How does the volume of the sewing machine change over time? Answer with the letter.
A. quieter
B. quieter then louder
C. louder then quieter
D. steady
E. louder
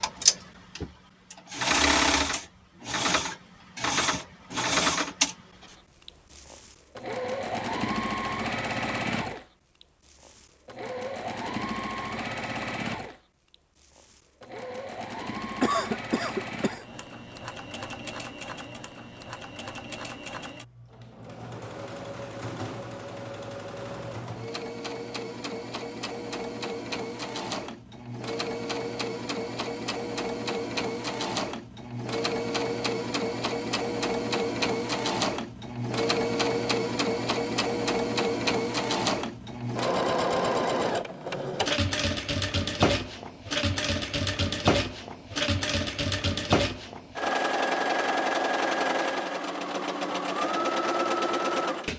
B.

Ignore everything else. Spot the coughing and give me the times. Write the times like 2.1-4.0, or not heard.
15.6-16.9.